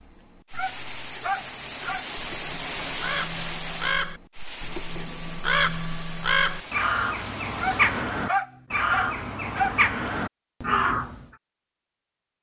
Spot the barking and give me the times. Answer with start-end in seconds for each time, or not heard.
0.5-2.0, 7.5-9.8.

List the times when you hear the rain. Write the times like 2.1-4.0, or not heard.
0.0-8.1.